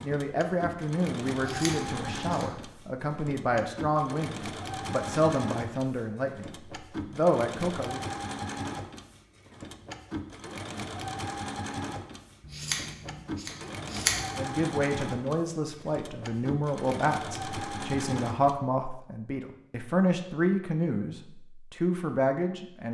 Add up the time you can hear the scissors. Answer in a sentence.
The scissors can be heard for 3 seconds in total.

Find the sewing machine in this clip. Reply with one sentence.
You can hear the sewing machine from 0.0 to 18.6 s.